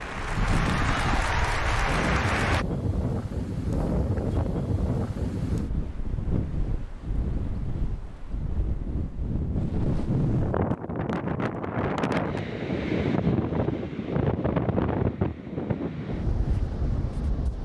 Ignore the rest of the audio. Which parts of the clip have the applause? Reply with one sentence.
You can hear the applause from 0.0 to 2.6 s.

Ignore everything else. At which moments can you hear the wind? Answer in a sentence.
The wind can be heard from 0.0 to 17.6 s.